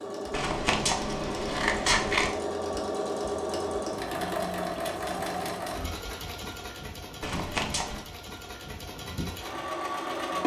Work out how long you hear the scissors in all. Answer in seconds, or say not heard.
3 s.